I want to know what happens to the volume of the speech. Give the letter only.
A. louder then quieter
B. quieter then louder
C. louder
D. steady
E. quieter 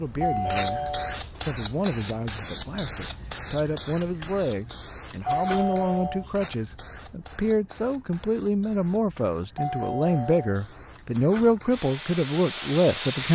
C.